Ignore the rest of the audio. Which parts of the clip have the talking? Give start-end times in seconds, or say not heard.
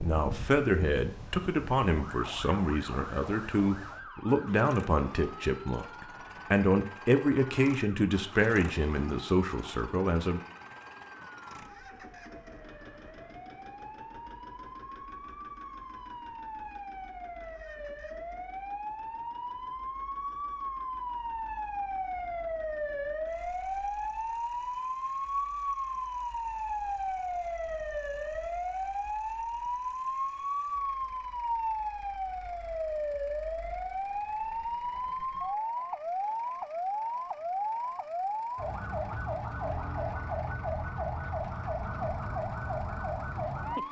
0.0-10.4.